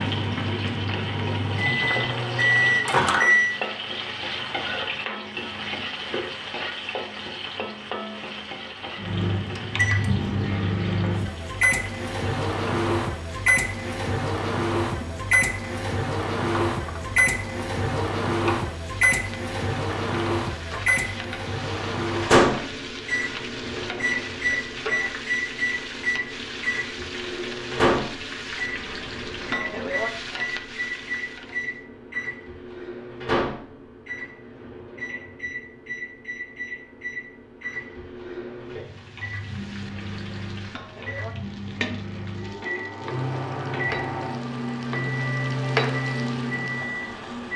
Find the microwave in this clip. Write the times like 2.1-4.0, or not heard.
0.0-3.5, 8.9-47.5.